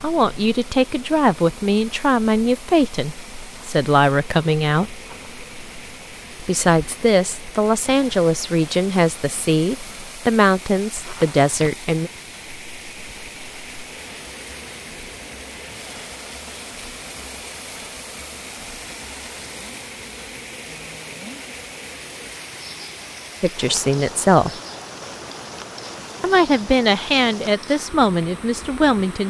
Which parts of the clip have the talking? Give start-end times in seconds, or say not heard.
0.0-5.0, 6.4-12.1, 23.4-24.6, 26.2-29.2.